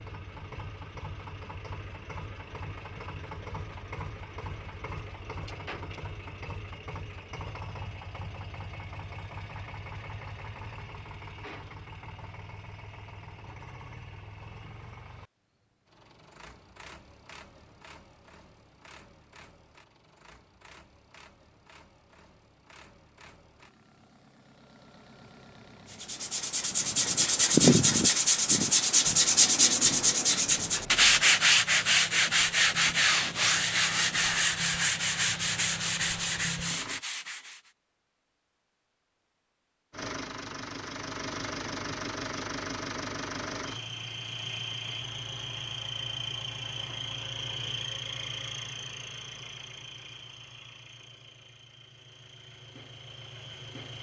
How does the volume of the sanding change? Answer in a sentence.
The volume of the sanding goes down.